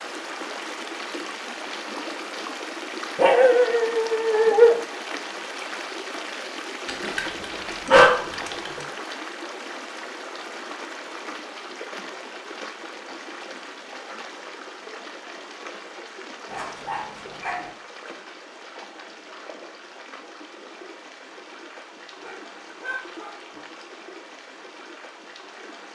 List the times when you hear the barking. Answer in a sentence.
You can hear the barking from 3.1 to 4.8 s, from 6.8 to 8.8 s, from 16.4 to 17.7 s and from 22.2 to 23.4 s.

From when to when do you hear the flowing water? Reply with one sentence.
You can hear the flowing water from 0.0 to 25.9 s.